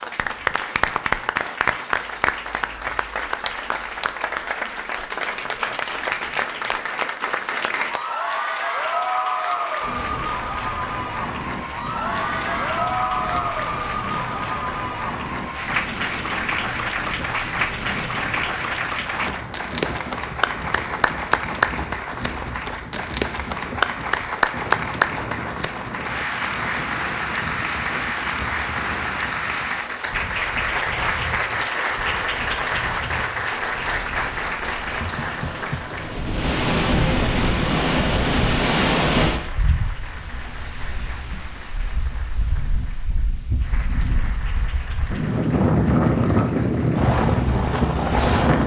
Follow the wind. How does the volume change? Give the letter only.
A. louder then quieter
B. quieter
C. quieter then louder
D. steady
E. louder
E.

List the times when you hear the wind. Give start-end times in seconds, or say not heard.
9.8-48.6.